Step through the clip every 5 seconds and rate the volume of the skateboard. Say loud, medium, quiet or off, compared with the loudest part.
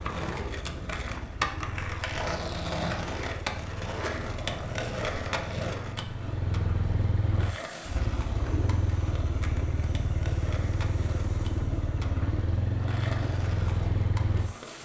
loud, medium, medium.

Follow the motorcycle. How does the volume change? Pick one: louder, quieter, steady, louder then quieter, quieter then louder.
louder.